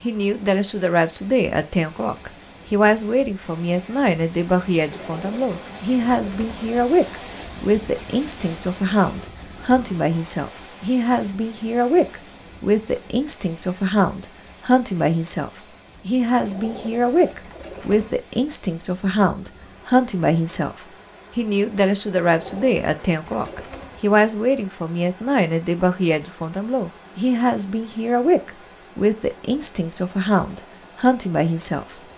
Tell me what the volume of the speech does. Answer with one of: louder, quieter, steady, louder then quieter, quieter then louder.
steady.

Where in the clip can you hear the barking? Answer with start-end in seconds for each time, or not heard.
not heard.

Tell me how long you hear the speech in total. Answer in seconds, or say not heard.
32 s.